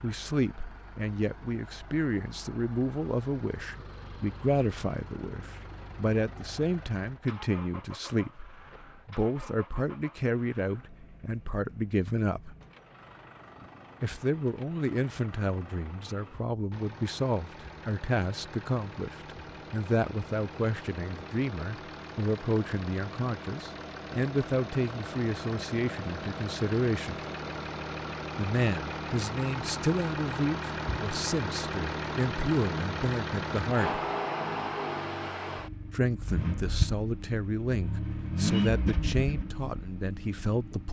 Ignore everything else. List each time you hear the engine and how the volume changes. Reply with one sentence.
You can hear the engine from 0.0 to 40.8 s, getting louder.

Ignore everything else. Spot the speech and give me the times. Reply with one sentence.
The speech can be heard from 0.0 to 12.6 s, from 14.0 to 27.1 s, from 28.4 to 34.0 s and from 35.9 to 40.8 s.